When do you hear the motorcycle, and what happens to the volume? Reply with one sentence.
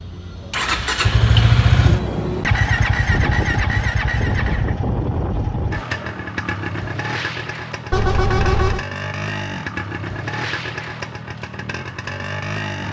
You can hear the motorcycle from 0.0 to 12.8 s, getting quieter.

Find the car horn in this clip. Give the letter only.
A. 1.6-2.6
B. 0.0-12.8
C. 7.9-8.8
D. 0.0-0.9
C.